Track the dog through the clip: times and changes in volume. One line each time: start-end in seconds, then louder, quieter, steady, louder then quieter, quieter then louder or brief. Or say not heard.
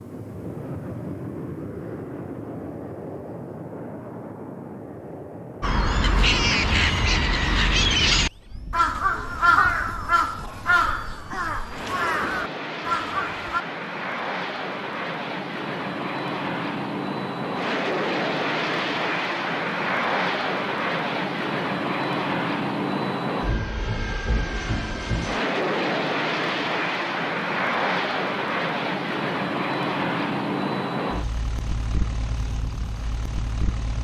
not heard.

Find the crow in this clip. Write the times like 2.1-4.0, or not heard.
5.6-13.7.